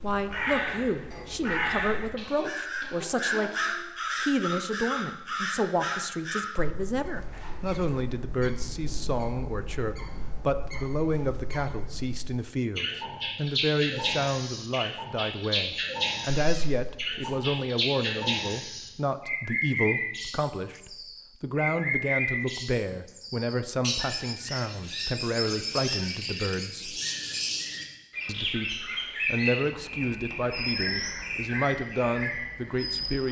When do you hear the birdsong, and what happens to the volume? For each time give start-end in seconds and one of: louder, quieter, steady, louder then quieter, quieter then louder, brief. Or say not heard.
0.0-33.2 quieter then louder.